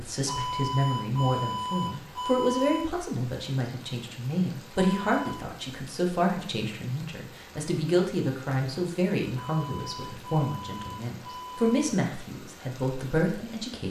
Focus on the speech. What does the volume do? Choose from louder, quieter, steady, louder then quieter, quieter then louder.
steady.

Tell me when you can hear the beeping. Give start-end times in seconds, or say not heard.
0.2-2.9, 4.8-5.5, 9.3-11.8.